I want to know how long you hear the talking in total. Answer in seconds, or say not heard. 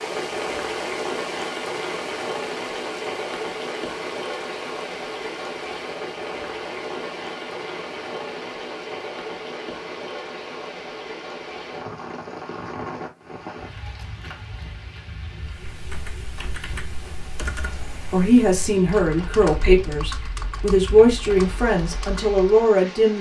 5 s.